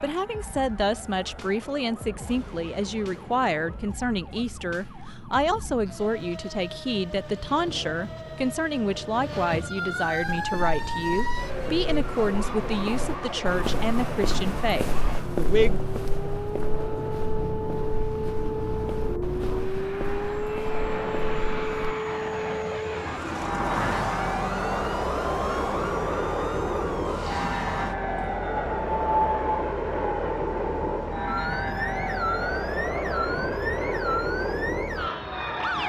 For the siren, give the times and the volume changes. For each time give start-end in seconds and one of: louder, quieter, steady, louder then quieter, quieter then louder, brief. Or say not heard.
0.0-35.8 louder.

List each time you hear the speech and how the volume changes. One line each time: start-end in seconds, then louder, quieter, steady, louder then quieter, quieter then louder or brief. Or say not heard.
0.0-15.8 steady.